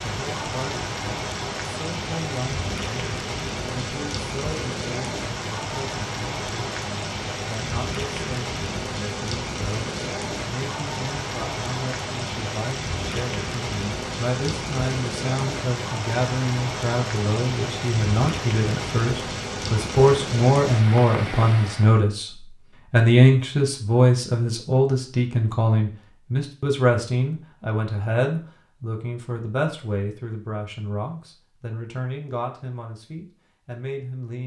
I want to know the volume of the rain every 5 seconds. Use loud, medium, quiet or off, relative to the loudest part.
loud, loud, loud, loud, loud, off, off.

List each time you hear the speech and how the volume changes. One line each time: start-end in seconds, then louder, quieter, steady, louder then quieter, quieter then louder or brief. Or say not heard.
0.0-34.4 louder then quieter.